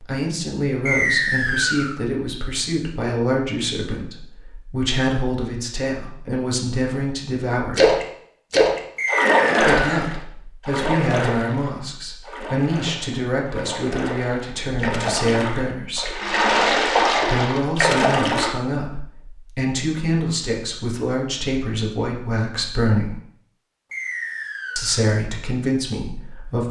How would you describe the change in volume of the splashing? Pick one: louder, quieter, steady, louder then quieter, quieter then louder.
quieter then louder.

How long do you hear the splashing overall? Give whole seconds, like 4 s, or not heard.
11 s.